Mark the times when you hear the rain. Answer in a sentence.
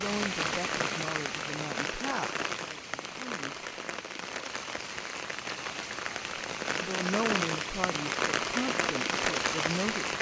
You can hear the rain from 0.0 to 10.1 s.